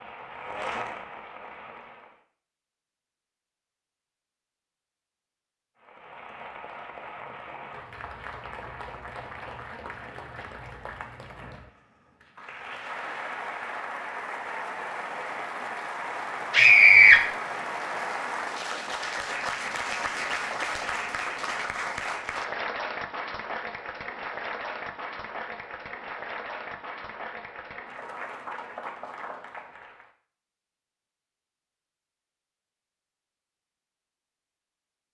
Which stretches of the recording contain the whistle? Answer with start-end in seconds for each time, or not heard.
not heard.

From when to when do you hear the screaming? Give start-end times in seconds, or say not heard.
16.5-17.2.